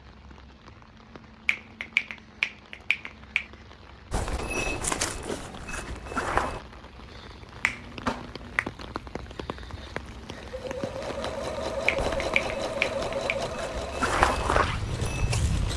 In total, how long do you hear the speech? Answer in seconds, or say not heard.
not heard.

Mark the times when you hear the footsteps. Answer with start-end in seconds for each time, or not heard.
4.1-6.6, 11.9-15.7.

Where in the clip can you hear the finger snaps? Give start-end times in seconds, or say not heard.
1.4-3.5, 7.6-8.7, 11.8-13.3.